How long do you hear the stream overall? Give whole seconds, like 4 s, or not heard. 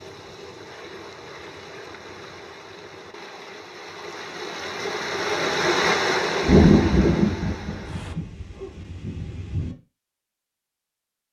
8 s.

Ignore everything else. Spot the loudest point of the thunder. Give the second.
7 s.